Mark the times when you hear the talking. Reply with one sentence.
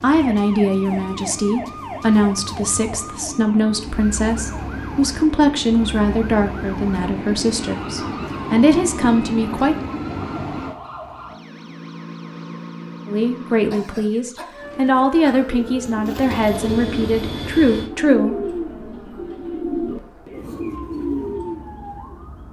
The talking can be heard from 0.0 to 9.8 s and from 13.1 to 18.4 s.